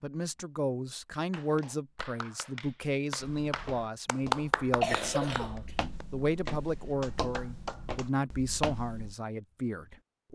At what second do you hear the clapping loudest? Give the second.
4 s.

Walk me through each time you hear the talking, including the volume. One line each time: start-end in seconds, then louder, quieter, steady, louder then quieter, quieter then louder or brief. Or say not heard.
0.0-10.3 steady.